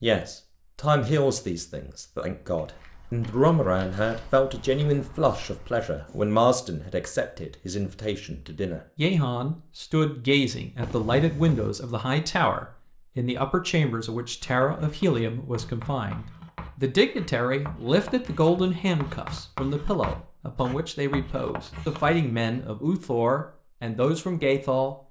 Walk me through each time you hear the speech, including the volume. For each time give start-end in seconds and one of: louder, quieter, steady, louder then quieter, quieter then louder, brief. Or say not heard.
0.0-24.9 steady.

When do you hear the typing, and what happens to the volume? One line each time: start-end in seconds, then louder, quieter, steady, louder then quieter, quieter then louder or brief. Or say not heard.
not heard.